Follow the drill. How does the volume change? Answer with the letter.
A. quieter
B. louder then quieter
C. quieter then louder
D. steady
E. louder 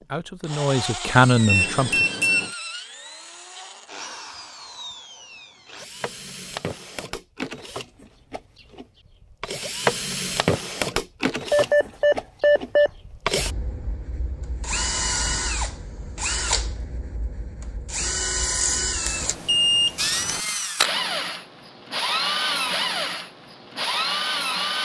E.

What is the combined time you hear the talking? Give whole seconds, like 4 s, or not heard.
2 s.